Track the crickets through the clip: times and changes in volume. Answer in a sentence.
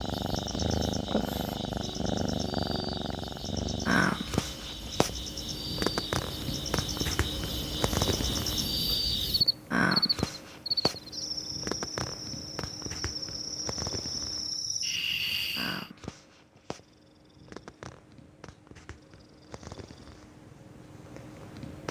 You can hear the crickets from 0.0 to 15.9 s, getting louder.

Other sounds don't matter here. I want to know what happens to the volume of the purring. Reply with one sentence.
The volume of the purring goes down.